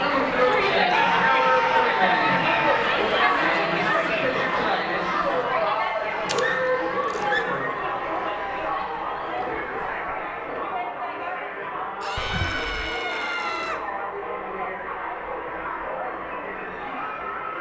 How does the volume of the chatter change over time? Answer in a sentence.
The volume of the chatter goes down.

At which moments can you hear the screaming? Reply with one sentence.
The screaming can be heard from 0.8 to 2.9 s, from 6.3 to 7.8 s and from 12.0 to 13.8 s.